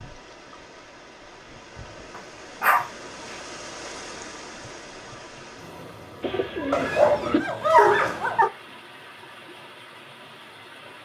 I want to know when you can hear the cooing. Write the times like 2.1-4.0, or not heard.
6.2-7.4.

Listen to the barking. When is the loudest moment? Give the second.
8 s.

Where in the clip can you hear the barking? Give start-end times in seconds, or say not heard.
2.1-2.9, 6.7-8.5.